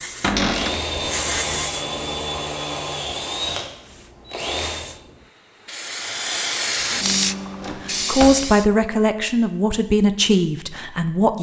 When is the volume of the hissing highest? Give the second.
7 s.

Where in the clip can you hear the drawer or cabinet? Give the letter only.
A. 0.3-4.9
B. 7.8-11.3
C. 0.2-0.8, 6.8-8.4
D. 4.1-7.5
C.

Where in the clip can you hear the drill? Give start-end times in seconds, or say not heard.
0.3-4.9.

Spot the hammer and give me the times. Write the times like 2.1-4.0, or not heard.
not heard.